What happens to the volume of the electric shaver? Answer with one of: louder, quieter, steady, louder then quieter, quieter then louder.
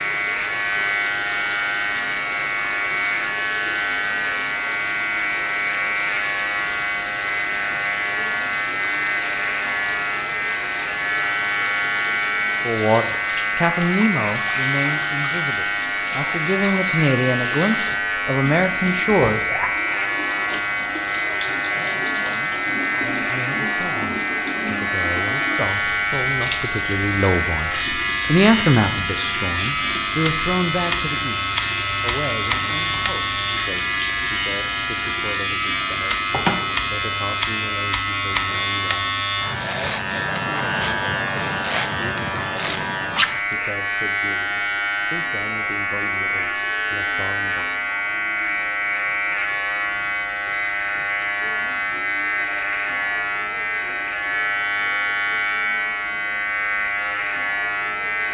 steady.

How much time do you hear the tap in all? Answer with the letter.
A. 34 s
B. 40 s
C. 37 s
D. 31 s
C.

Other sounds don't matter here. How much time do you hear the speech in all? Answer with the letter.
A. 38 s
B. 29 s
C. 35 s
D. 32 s
D.